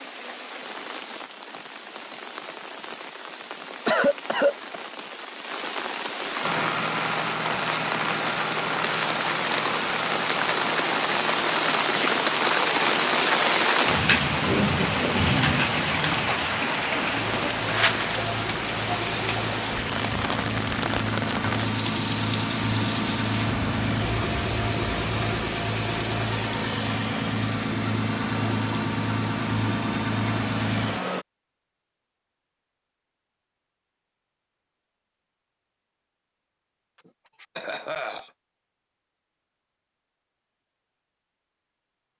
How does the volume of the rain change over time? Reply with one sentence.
The volume of the rain goes up, then down.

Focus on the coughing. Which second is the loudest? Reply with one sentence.
The volume of the coughing peaks at 4 seconds.